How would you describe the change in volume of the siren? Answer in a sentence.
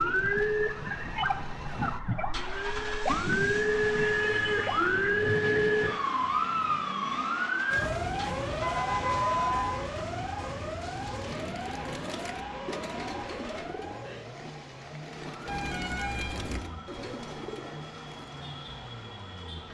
The loudness of the siren goes down.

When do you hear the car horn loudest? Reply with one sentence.
The loudest moment of the car horn is at 9 seconds.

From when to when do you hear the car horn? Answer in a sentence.
You can hear the car horn from 4.3 to 4.8 s, from 8.5 to 9.8 s and from 15.4 to 16.6 s.